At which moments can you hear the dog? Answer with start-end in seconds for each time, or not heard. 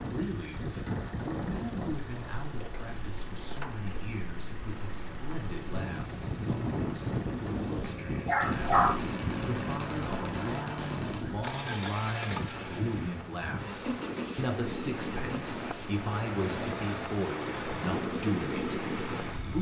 7.8-9.2.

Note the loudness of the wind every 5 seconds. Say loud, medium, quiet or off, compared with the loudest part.
medium, loud, medium, loud.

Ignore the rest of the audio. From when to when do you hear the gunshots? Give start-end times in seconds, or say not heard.
8.4-11.6.